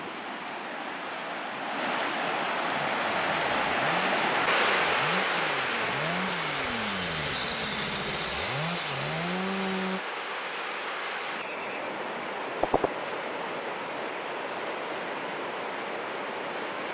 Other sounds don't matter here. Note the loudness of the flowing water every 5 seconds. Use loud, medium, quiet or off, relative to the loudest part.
loud, loud, medium, medium.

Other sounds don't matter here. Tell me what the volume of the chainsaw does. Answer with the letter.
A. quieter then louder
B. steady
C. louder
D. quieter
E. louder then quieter
C.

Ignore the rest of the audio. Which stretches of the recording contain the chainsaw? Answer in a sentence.
The chainsaw can be heard from 2.7 to 10.0 s.